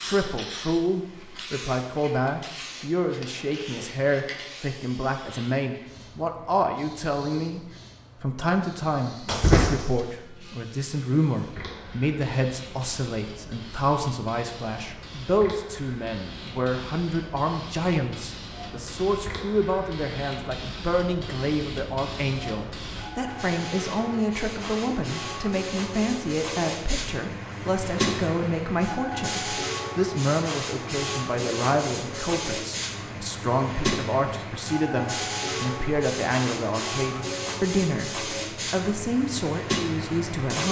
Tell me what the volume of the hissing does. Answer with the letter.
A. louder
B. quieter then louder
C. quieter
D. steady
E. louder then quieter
A.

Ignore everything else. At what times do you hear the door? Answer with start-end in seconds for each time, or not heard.
9.2-10.0.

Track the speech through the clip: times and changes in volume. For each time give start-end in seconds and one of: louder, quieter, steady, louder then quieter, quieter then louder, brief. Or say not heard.
0.0-7.6 steady
8.2-40.6 steady.